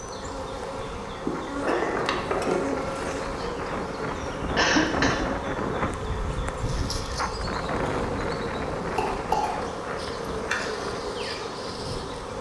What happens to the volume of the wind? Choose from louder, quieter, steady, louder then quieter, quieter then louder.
louder then quieter.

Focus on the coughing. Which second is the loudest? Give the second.
5 s.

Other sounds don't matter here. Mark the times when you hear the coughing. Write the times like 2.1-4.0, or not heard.
1.6-2.1, 4.5-5.2, 8.8-10.6.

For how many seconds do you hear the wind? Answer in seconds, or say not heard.
12 s.